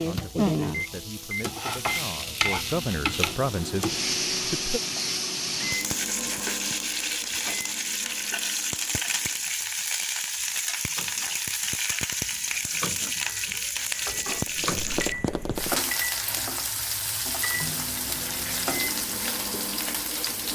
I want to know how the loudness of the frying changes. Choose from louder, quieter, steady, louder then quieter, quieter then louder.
steady.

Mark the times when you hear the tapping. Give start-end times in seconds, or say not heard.
14.0-15.8.